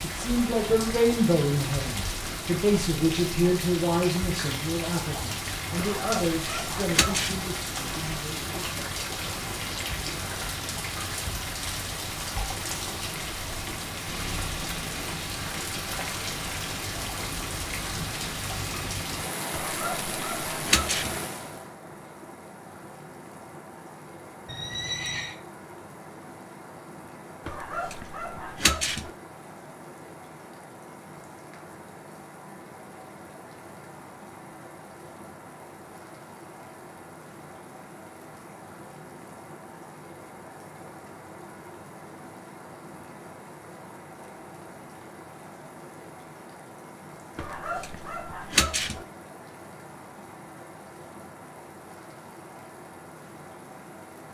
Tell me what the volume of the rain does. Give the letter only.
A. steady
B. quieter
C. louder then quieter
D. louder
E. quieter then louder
B.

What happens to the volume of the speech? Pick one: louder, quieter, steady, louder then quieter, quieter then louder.
quieter.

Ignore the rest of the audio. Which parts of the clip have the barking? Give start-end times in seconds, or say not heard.
5.8-7.5, 19.5-21.2, 27.4-29.1, 47.4-49.0.